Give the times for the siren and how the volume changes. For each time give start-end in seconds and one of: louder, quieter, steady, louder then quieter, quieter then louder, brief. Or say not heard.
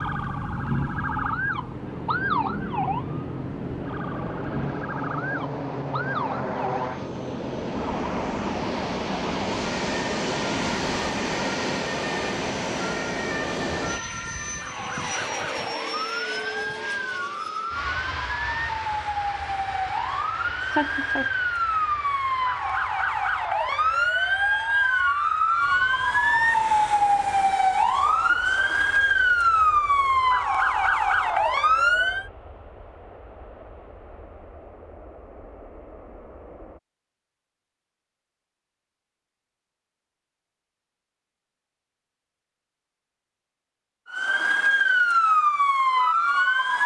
0.0-32.3 quieter then louder
44.1-46.8 brief.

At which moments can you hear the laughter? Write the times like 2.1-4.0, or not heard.
20.6-21.3.